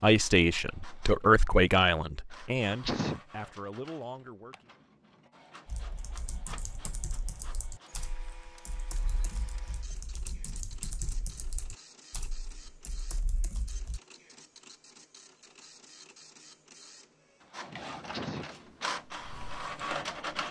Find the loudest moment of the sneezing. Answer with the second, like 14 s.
3 s.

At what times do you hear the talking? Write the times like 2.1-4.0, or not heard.
0.0-4.7.